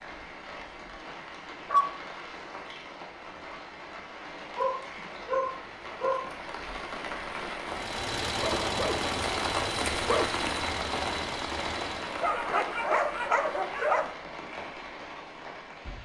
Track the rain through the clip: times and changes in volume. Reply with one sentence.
You can hear the rain from 0.0 to 16.0 s, getting louder then quieter.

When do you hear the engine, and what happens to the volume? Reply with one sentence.
You can hear the engine from 7.7 to 12.3 s, getting quieter.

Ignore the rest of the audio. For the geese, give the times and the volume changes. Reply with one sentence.
You can't hear the geese here.